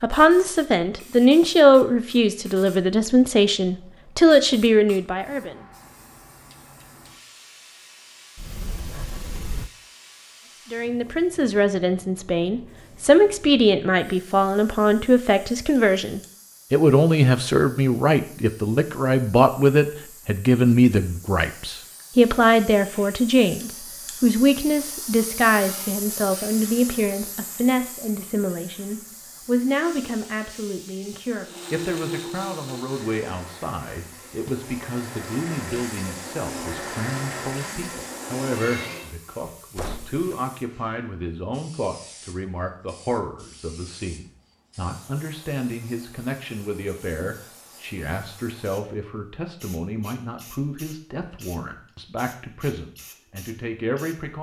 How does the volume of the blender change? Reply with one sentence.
The loudness of the blender goes down, then up.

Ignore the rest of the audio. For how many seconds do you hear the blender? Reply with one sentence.
The blender can be heard for 8 seconds in total.